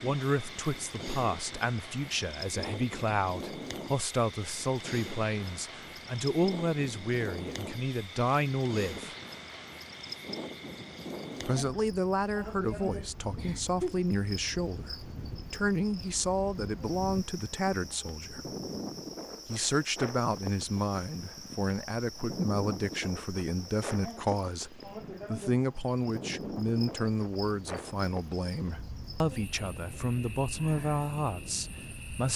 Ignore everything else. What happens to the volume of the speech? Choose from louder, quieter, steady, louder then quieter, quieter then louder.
steady.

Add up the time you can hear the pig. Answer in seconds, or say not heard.
not heard.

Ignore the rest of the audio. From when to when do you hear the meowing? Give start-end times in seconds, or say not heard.
12.7-13.9.